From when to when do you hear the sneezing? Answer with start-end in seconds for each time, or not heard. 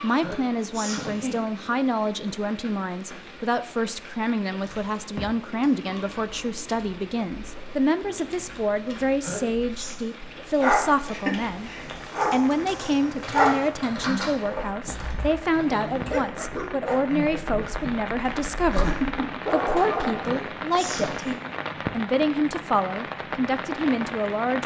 0.1-1.4, 9.1-9.9, 20.1-21.4.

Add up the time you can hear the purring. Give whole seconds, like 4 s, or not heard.
not heard.